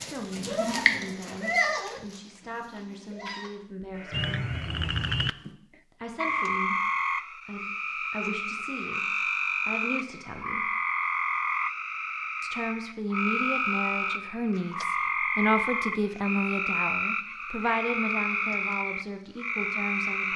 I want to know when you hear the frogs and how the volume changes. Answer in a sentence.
You can hear the frogs briefly from 4.1 to 5.3 s; and from 6.2 to 20.3 s, at a steady volume.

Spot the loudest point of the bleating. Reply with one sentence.
The volume of the bleating peaks at 1 second.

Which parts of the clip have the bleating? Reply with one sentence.
You can hear the bleating from 0.0 to 5.5 s.